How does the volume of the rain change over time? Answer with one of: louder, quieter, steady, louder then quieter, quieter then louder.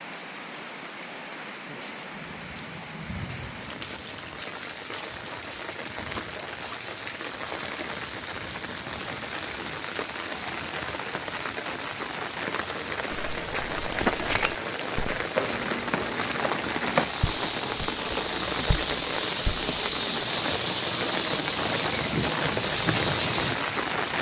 louder.